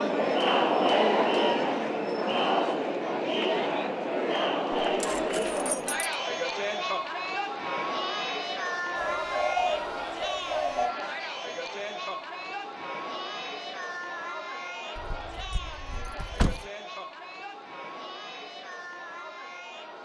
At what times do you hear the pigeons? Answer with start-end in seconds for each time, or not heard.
8.9-10.9.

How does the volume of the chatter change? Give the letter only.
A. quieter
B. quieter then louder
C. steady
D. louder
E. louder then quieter
A.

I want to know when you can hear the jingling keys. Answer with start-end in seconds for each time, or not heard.
4.9-6.1, 14.9-16.7.